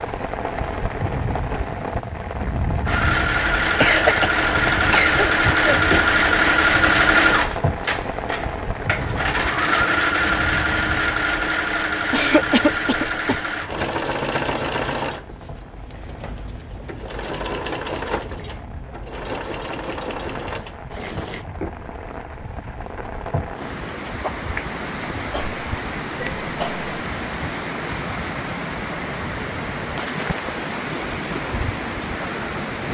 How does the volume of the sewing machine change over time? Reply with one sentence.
The loudness of the sewing machine goes down.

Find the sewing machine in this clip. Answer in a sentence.
The sewing machine can be heard from 2.9 to 21.4 s.